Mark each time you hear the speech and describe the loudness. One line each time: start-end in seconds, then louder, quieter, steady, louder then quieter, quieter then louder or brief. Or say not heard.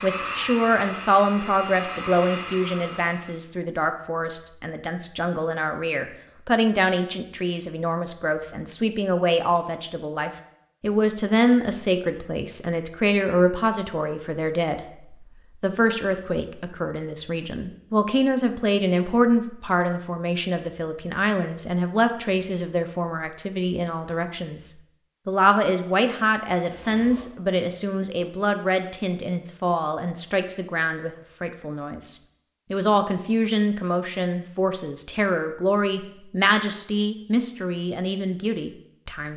0.0-39.3 steady.